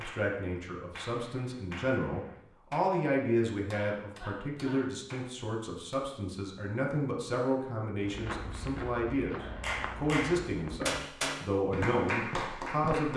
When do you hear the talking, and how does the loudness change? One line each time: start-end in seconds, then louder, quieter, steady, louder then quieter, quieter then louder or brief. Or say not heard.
0.0-13.1 steady.